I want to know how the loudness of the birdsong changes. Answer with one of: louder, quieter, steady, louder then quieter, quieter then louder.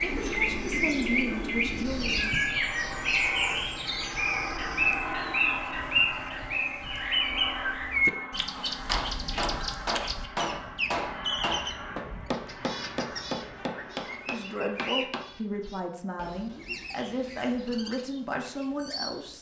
quieter.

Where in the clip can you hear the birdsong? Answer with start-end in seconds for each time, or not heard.
0.0-19.3.